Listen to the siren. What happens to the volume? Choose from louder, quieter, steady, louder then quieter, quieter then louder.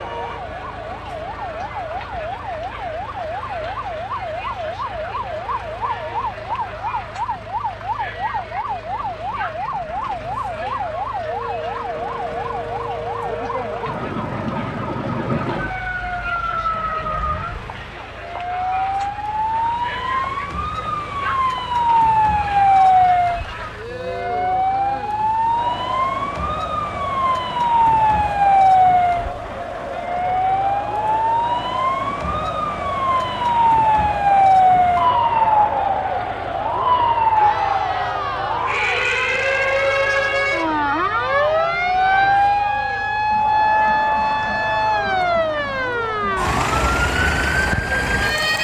louder.